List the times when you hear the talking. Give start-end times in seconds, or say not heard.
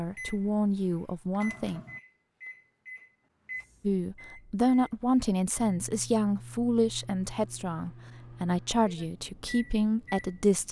0.0-1.8, 3.8-10.6.